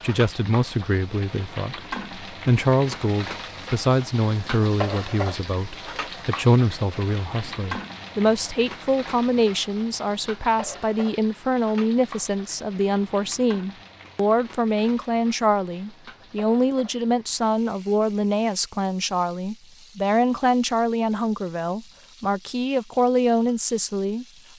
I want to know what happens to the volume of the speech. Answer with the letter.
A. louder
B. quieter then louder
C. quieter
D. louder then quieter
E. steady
E.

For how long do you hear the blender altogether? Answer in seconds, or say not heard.
not heard.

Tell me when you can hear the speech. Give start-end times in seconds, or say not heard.
0.0-24.2.